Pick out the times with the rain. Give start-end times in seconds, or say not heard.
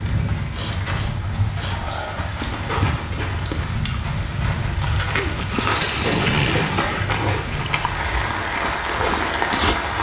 0.0-9.9.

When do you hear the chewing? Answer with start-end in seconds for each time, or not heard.
2.0-9.9.